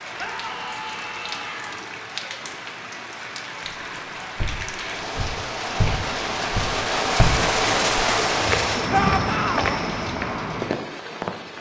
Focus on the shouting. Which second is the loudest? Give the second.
9 s.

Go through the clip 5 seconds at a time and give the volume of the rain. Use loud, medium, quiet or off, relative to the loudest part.
medium, loud, medium.